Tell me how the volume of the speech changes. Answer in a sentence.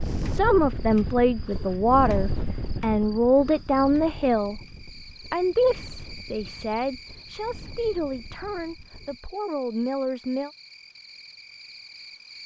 The volume of the speech goes down.